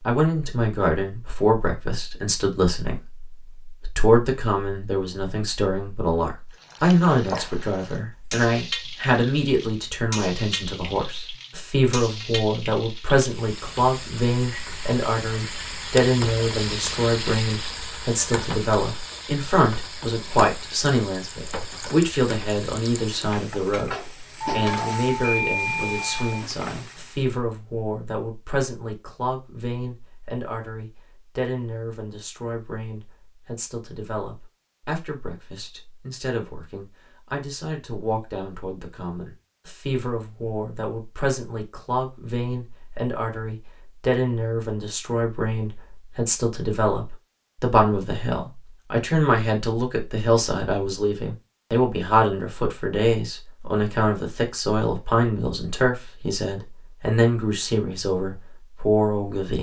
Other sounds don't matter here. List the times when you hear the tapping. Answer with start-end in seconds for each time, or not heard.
23.9-24.8.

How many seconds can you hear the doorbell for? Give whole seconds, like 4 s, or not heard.
2 s.